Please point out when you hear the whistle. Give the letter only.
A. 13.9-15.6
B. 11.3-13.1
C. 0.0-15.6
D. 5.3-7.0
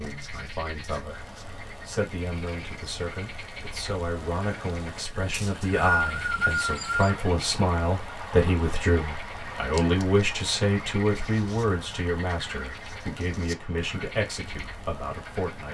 D.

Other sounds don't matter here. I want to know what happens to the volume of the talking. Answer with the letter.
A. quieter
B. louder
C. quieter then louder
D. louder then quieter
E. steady
D.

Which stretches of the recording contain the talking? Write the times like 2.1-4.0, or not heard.
0.0-15.6.